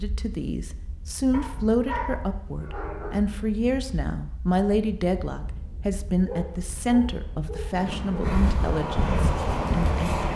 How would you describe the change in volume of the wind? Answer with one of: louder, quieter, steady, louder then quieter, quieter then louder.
louder.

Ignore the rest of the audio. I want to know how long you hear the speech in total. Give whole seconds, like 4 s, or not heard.
10 s.